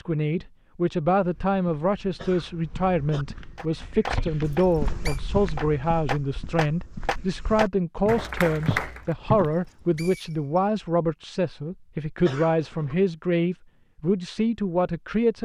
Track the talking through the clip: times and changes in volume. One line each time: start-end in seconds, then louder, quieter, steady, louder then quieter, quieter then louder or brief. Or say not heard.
0.0-15.4 steady.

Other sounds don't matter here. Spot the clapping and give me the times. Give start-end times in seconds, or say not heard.
3.5-9.2.